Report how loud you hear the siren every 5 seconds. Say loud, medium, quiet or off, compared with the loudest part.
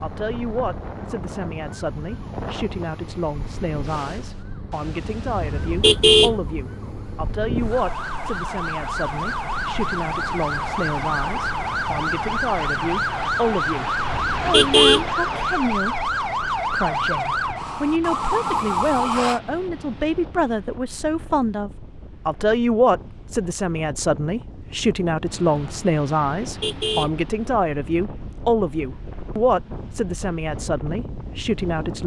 quiet, medium, loud, loud, off, off, off.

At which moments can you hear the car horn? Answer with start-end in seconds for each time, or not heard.
5.4-6.4, 14.1-15.1, 26.4-27.1.